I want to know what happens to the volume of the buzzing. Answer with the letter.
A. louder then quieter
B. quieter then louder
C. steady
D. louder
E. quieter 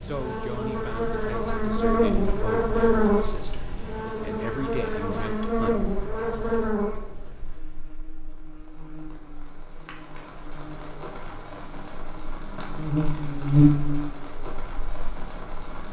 B.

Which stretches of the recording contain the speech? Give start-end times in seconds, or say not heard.
0.0-6.0.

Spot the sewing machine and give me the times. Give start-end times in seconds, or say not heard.
not heard.